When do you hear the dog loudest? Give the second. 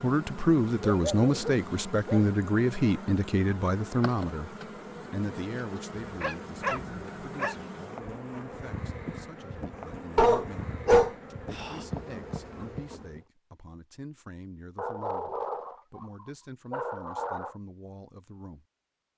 11 s.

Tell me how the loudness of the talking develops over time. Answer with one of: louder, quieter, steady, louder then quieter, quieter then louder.
quieter.